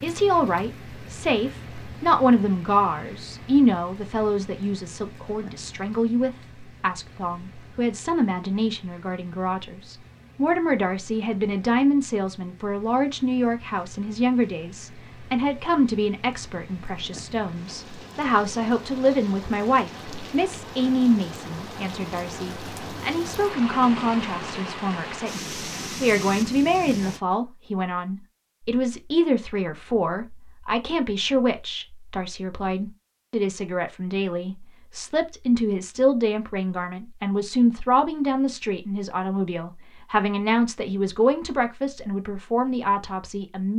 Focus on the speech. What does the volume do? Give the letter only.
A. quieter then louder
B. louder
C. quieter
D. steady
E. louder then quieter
D.